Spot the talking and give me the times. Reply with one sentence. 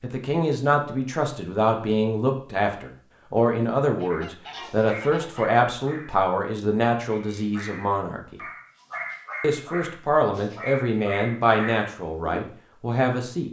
The talking can be heard from 0.0 to 8.4 s and from 9.4 to 13.4 s.